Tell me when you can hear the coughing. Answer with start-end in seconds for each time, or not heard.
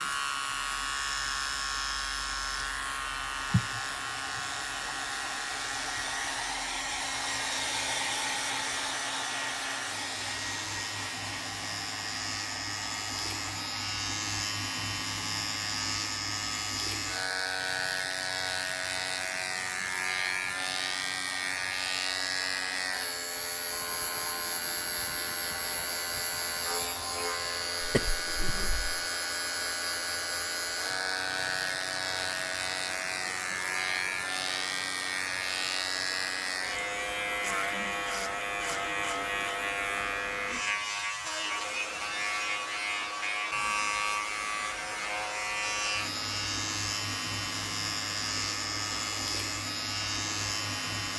3.5-5.0, 27.8-29.0.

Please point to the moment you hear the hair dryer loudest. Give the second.
8 s.